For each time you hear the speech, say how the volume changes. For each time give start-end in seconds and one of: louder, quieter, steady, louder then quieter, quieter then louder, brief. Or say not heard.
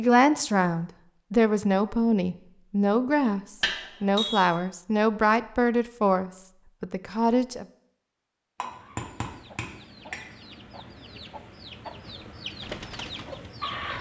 0.0-7.7 steady.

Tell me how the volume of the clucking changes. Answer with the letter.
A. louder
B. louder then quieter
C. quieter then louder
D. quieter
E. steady
A.